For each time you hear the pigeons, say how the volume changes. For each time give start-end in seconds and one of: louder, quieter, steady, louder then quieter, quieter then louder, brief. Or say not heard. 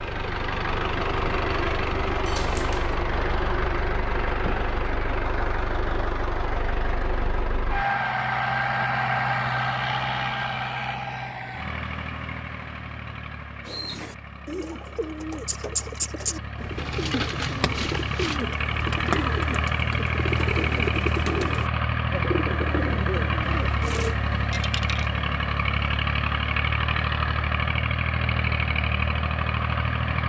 13.7-24.1 steady.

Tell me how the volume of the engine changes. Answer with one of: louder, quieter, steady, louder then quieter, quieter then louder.
quieter then louder.